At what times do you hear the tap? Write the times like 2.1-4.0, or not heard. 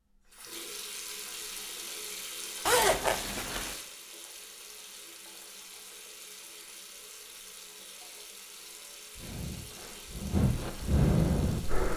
0.1-11.9.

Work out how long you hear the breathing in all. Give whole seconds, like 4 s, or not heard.
3 s.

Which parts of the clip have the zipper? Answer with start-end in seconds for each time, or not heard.
2.6-3.8.